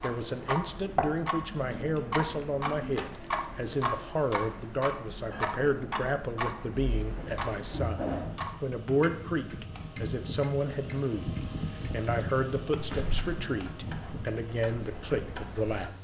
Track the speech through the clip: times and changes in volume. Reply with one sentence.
You can hear the speech from 0.0 to 15.9 s, at a steady volume.